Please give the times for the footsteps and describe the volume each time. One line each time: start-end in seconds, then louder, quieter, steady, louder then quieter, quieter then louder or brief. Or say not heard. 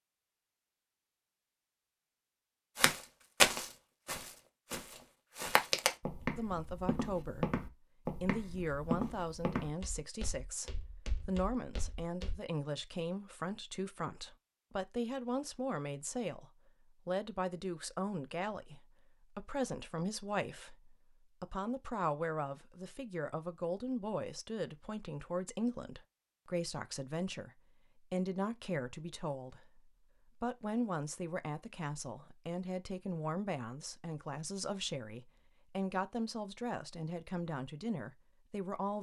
2.8-12.3 quieter.